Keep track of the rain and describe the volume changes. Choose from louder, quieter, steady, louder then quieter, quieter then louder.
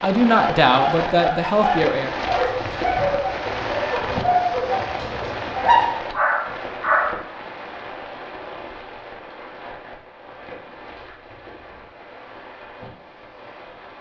quieter.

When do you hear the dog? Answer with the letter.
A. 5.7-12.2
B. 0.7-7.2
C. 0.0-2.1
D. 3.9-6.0
B.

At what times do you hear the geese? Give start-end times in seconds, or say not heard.
not heard.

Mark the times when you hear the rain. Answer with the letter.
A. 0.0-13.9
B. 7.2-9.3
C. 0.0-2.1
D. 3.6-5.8
A.